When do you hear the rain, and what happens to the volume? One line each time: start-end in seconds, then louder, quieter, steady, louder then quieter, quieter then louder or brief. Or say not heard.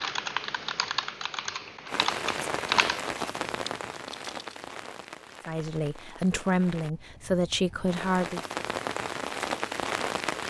1.9-10.4 quieter then louder.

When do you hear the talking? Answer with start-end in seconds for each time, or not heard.
5.5-8.4.